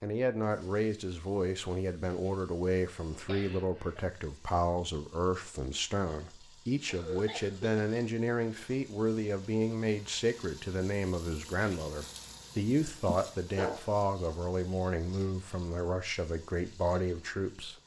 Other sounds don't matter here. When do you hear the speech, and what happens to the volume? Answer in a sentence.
You can hear the speech from 0.0 to 17.8 s, at a steady volume.